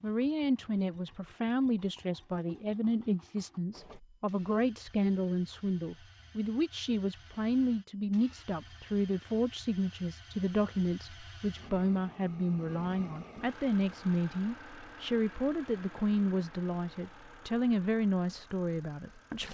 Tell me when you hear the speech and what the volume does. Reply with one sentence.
You can hear the speech from 0.0 to 19.4 s, at a steady volume.